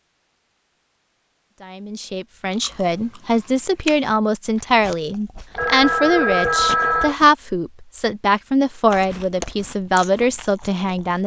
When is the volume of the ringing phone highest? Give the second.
7 s.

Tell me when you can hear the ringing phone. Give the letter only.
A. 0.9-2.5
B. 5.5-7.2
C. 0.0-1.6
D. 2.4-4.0
B.